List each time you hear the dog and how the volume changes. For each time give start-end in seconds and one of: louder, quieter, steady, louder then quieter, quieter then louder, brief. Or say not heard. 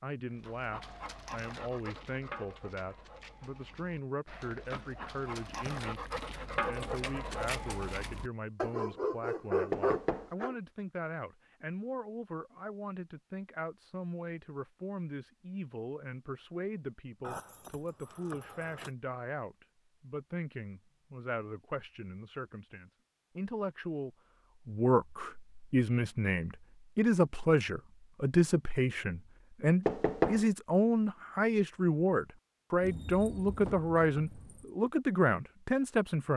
0.3-10.6 quieter then louder.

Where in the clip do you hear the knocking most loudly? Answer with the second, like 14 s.
30 s.